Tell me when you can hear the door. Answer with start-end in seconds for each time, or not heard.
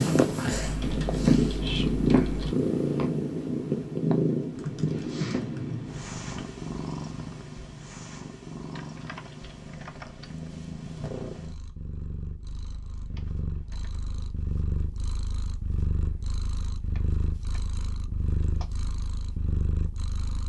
not heard.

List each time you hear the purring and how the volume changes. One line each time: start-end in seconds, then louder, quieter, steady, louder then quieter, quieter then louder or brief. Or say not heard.
0.0-20.4 quieter.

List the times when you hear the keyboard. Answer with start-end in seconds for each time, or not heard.
0.6-2.5, 4.5-6.5, 8.8-10.5, 13.2-13.9, 16.9-17.6.